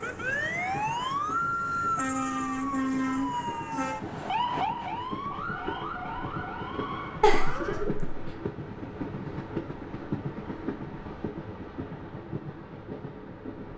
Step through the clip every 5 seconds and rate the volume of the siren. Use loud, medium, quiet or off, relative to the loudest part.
loud, medium, off.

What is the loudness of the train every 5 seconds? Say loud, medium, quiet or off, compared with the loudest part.
medium, loud, loud.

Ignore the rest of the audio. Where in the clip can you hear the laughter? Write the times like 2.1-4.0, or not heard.
7.2-8.3.